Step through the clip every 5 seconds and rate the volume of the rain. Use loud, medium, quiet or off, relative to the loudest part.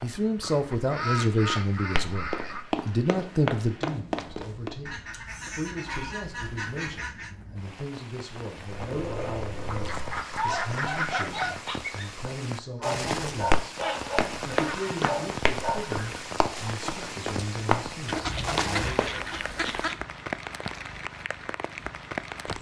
quiet, medium, loud, loud, loud.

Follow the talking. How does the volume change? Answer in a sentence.
The loudness of the talking goes down.